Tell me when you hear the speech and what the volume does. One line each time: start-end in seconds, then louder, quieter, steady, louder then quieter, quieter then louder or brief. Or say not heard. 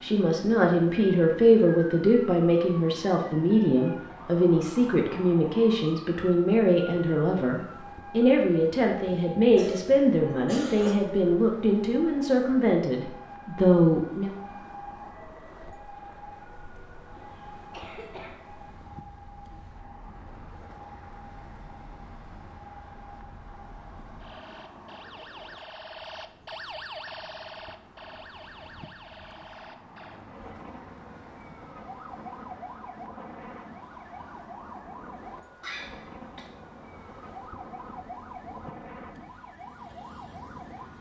0.0-14.3 steady.